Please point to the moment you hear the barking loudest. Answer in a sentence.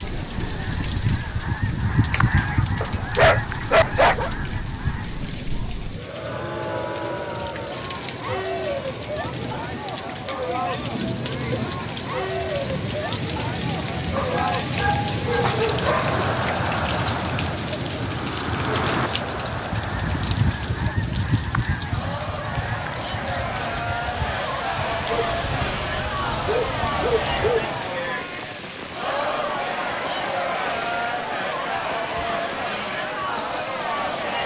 The loudest moment of the barking is at 4 seconds.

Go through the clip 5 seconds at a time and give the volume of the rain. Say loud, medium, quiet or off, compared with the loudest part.
medium, medium, loud, loud, medium, medium, medium.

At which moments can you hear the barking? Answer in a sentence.
The barking can be heard from 2.8 to 4.3 s, from 14.2 to 16.2 s and from 25.1 to 27.6 s.